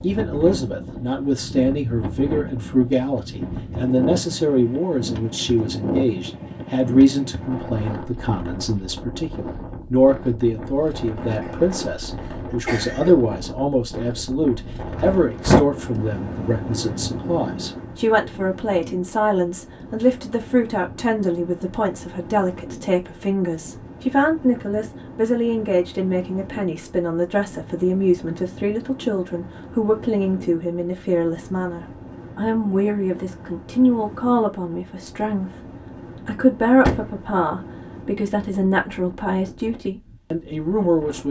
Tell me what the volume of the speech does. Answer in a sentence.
The volume of the speech stays about the same.